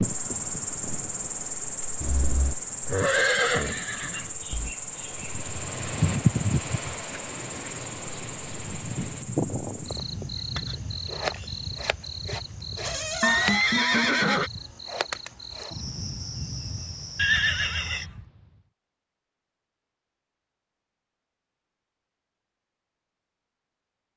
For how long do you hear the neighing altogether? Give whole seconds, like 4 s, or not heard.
5 s.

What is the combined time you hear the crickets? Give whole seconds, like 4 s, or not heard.
18 s.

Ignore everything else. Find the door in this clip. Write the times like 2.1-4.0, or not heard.
12.8-13.7.